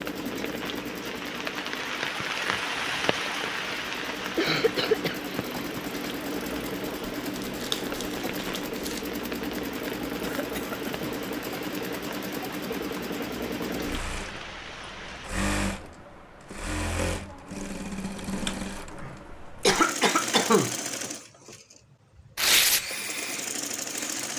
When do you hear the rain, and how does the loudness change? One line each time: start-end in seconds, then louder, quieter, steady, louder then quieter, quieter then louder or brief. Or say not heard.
0.0-15.3 quieter.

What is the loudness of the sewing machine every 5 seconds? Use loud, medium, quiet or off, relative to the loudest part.
medium, loud, loud, loud, loud.